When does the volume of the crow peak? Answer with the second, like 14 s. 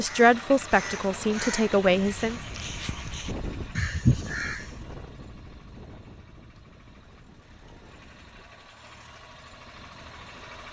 4 s.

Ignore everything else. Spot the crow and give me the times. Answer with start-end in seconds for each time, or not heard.
0.0-4.7.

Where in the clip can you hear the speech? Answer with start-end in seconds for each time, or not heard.
0.0-2.4.